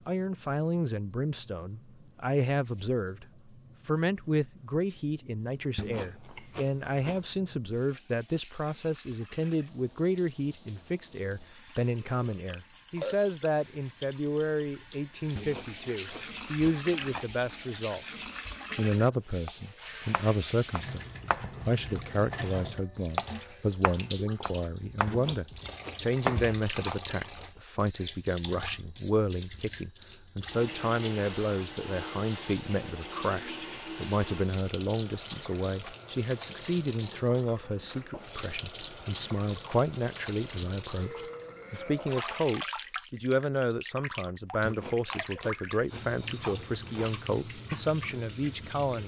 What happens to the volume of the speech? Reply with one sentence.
The volume of the speech stays about the same.